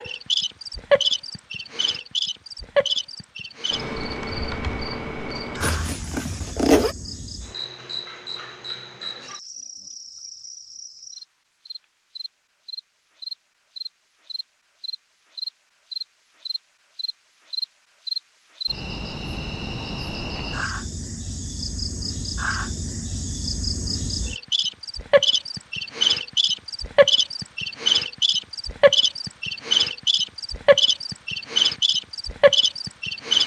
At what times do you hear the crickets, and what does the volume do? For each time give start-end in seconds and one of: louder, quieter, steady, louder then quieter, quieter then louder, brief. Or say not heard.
0.0-33.4 quieter then louder.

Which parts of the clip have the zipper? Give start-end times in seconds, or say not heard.
5.6-7.0.